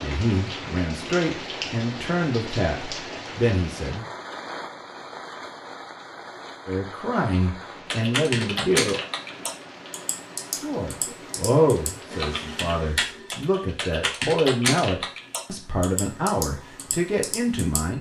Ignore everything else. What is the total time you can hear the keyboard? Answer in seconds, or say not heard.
10 s.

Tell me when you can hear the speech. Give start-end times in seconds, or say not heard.
0.0-4.0, 6.7-9.0, 10.6-17.9.